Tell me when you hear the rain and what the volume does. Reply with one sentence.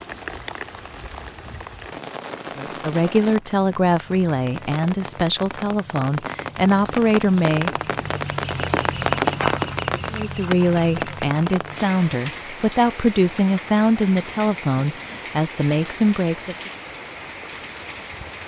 The rain can be heard from 0.0 to 18.4 s, getting louder then quieter.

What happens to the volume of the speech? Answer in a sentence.
The volume of the speech stays about the same.